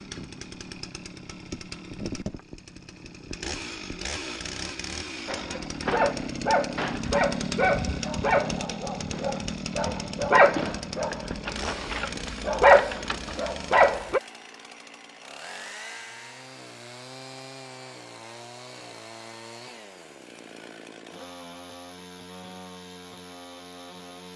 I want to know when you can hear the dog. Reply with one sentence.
The dog can be heard from 5.2 to 14.2 s.